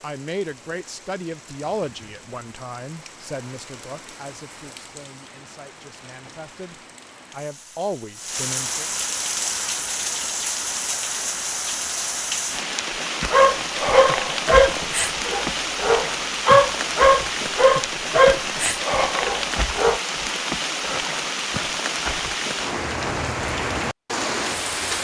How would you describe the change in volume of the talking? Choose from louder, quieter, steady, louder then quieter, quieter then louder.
quieter then louder.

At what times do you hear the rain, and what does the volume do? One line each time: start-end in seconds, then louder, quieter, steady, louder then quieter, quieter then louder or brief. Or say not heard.
0.0-24.9 louder.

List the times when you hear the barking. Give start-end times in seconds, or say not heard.
13.3-20.0.